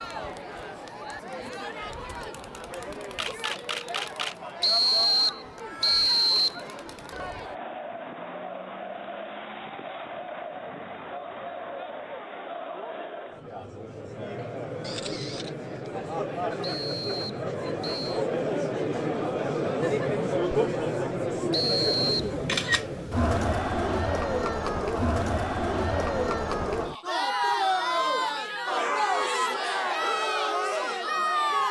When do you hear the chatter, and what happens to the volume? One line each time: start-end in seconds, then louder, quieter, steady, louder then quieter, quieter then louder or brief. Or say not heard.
0.0-31.6 louder.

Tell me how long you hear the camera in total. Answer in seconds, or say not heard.
3 s.